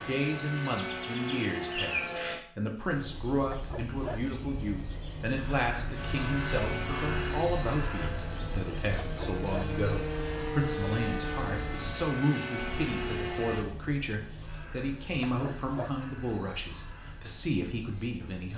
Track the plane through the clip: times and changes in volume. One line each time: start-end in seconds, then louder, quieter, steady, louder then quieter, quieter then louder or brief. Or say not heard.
0.0-2.5 brief
5.9-13.7 quieter then louder.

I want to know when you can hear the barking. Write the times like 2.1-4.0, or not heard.
3.5-4.2, 9.0-9.8, 15.2-16.0.